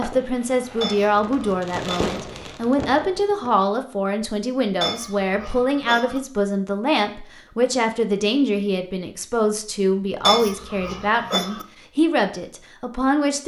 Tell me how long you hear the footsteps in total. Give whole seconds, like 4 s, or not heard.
not heard.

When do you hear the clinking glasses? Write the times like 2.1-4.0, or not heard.
0.8-2.1, 4.8-6.2, 10.2-11.7.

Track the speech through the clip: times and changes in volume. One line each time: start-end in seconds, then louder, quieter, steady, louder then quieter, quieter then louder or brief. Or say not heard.
0.0-13.4 steady.